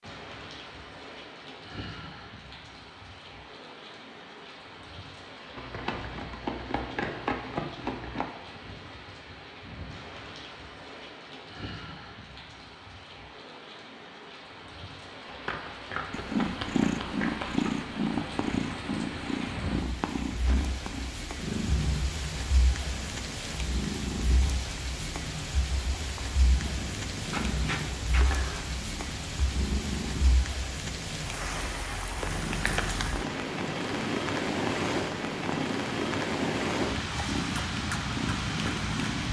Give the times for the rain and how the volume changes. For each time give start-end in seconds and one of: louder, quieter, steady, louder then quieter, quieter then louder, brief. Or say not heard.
0.0-39.2 louder.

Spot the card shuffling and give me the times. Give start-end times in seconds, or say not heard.
5.5-8.2, 15.3-17.9, 27.3-28.6.